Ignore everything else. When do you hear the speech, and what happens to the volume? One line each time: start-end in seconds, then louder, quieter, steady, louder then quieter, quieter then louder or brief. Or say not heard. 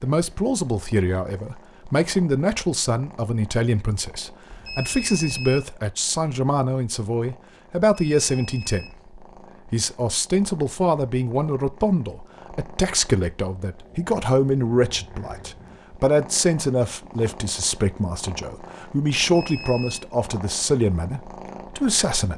0.0-22.3 steady.